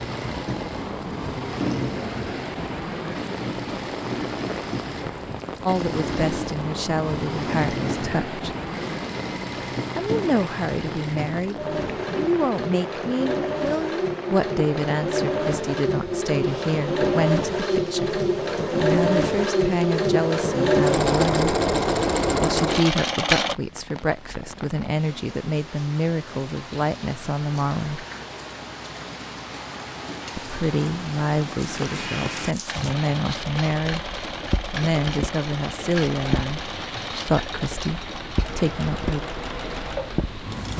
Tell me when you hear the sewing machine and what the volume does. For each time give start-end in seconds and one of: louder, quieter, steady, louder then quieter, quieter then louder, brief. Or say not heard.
0.0-23.6 louder
32.6-40.7 steady.